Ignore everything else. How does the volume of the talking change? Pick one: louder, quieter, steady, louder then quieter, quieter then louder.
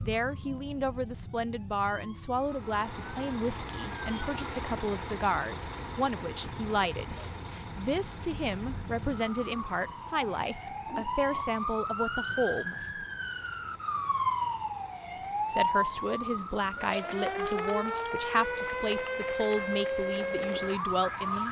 steady.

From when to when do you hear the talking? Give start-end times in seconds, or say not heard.
0.0-13.1, 15.4-21.4.